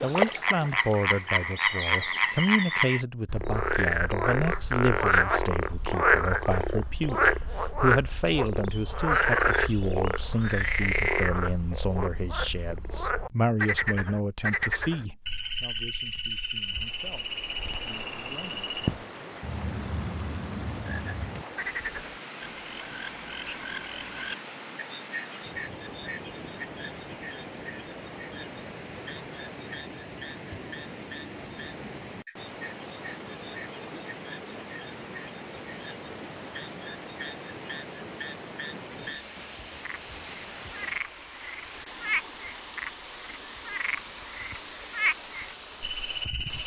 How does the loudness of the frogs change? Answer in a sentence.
The volume of the frogs goes down, then up.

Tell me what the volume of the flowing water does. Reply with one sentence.
The volume of the flowing water stays about the same.